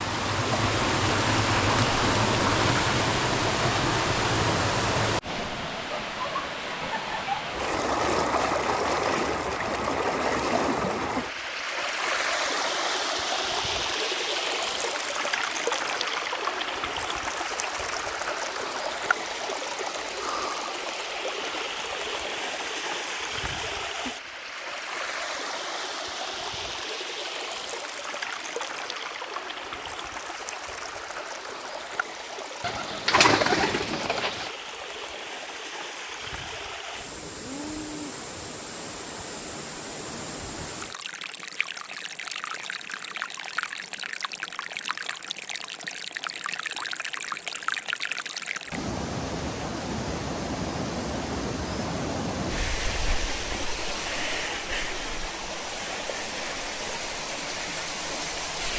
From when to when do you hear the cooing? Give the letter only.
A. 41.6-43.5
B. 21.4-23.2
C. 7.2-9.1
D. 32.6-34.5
D.